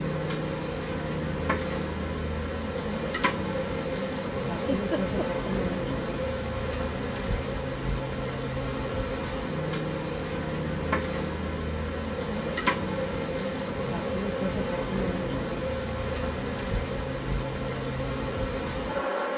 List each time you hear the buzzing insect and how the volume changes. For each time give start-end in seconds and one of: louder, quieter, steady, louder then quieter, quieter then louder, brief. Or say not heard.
0.0-19.3 steady.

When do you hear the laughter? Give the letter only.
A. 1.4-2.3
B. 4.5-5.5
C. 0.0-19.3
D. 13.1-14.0
B.